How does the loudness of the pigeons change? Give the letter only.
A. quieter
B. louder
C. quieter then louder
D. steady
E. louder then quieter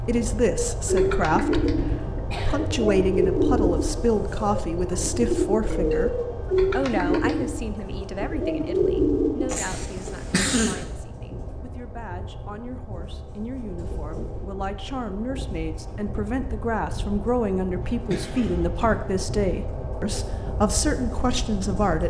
D.